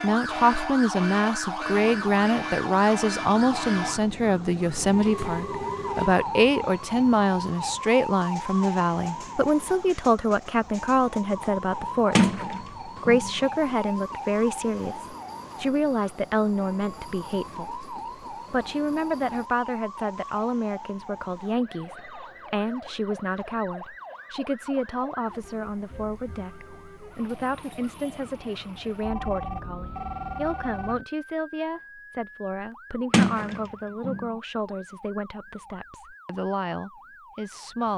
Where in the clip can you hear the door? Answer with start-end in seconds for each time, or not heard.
12.2-13.3, 33.1-34.3.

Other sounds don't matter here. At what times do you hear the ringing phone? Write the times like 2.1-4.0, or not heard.
4.8-6.2, 29.0-31.1.